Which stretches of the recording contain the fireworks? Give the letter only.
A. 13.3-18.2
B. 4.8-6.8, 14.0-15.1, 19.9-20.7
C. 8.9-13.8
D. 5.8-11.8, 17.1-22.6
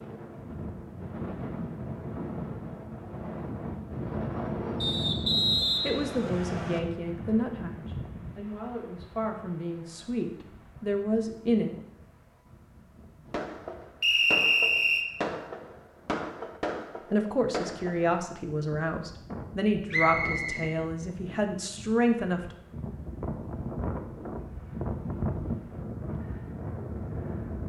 A.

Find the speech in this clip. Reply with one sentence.
The speech can be heard from 5.8 to 11.8 s and from 17.1 to 22.6 s.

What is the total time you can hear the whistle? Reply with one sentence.
You can hear the whistle for 4 seconds altogether.